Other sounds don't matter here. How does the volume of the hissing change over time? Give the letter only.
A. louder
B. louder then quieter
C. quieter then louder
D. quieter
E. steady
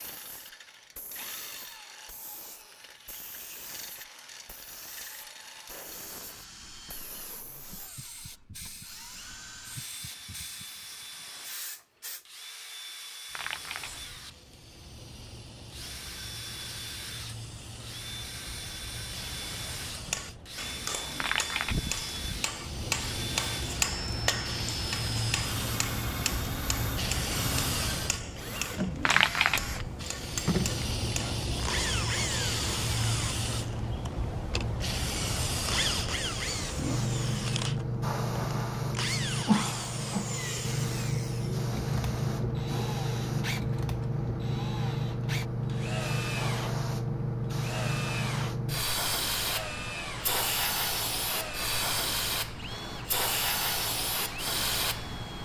A.